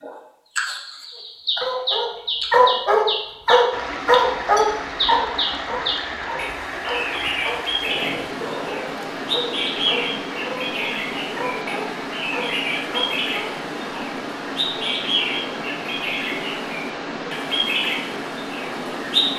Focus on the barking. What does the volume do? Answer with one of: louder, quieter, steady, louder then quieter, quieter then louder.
quieter.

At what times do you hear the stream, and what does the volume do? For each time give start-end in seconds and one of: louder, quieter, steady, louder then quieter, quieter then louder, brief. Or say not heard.
3.7-19.3 steady.